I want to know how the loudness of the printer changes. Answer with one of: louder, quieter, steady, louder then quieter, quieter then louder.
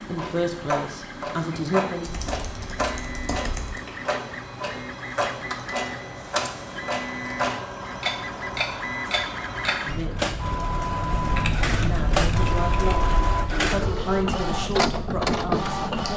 louder.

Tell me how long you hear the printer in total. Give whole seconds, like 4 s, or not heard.
16 s.